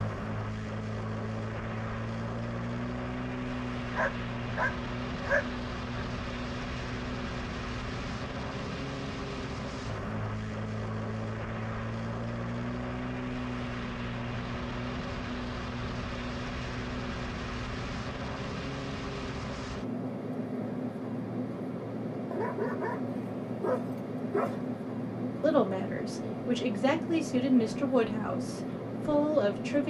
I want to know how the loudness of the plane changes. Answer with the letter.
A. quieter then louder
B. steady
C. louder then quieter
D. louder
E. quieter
B.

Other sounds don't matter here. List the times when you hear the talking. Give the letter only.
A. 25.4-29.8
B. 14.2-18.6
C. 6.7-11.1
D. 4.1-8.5
A.